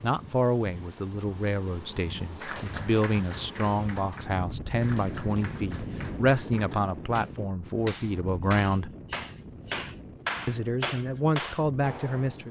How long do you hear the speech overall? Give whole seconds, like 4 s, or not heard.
11 s.